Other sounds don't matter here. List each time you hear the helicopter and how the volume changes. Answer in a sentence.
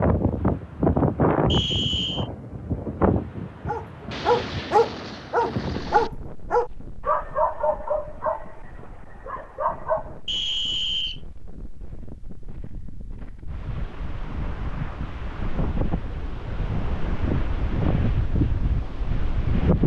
You can't hear the helicopter here.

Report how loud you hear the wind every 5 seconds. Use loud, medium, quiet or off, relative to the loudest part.
loud, quiet, quiet, loud.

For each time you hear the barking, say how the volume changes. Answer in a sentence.
You can hear the barking from 3.6 to 10.2 s, getting quieter.